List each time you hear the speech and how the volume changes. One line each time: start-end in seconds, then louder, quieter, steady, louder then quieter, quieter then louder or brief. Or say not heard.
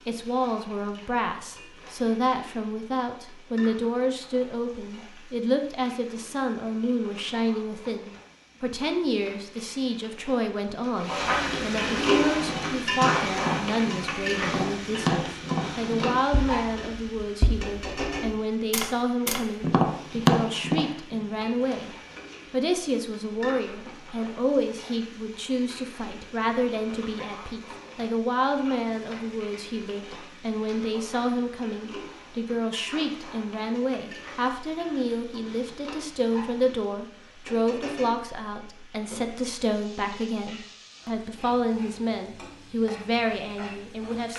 0.1-44.3 steady.